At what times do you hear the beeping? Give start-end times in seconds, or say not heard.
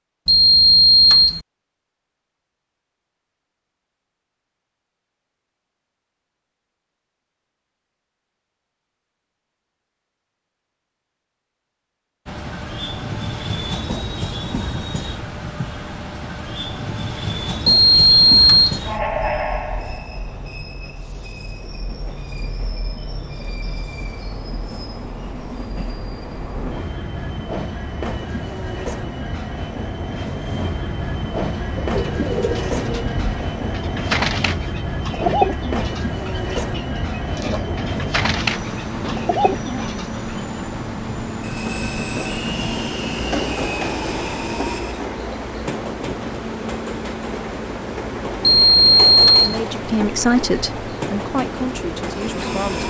0.2-1.4, 17.7-18.8, 48.4-49.6.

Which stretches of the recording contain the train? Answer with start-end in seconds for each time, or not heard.
12.2-52.8.